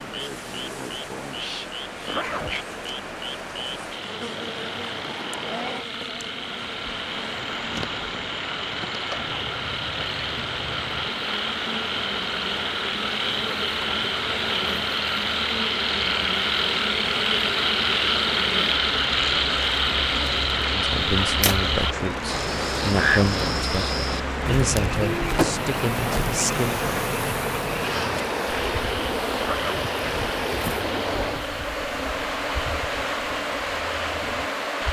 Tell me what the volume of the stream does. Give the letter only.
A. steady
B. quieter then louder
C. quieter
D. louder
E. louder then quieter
D.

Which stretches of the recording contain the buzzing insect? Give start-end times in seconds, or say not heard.
0.0-34.8.